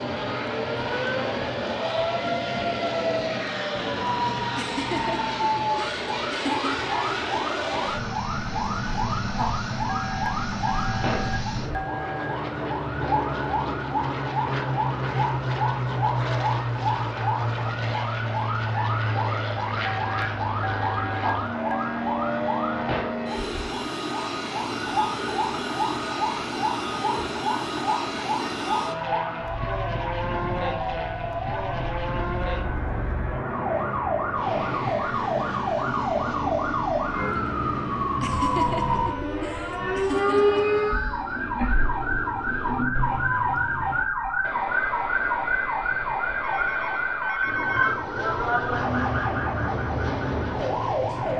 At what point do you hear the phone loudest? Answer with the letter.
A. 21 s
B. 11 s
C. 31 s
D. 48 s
D.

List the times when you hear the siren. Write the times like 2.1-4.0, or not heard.
0.0-51.3.